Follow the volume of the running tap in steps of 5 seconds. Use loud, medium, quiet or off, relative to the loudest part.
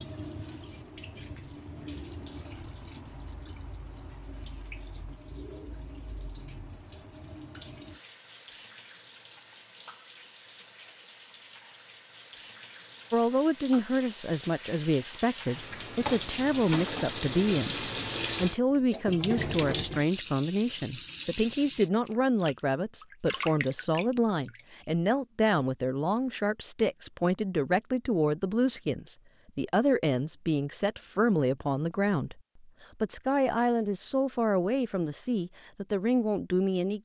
quiet, quiet, quiet, loud, medium, off, off, off.